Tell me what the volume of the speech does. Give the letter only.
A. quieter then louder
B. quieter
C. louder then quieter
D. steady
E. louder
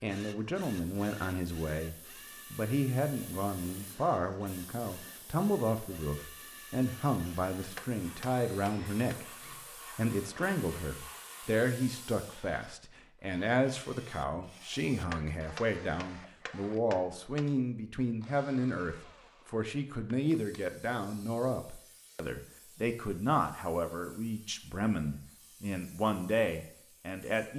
D.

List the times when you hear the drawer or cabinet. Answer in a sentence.
You can't hear the drawer or cabinet here.